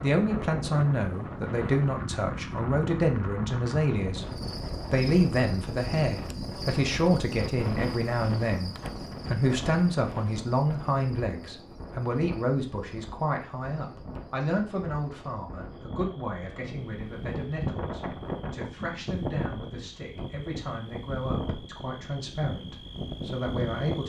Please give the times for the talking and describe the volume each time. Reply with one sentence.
You can hear the talking from 0.0 to 24.0 s, getting quieter.